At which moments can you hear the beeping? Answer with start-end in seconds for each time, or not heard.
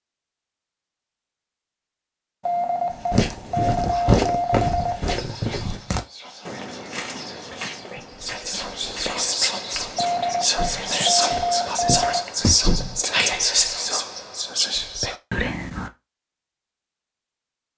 2.5-5.2, 9.9-12.2.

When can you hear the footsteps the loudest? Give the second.
4 s.